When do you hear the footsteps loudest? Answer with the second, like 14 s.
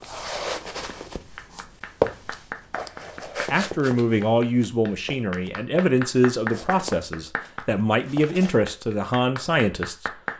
2 s.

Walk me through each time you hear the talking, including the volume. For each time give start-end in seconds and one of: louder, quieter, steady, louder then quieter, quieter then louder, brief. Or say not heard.
3.5-10.1 steady.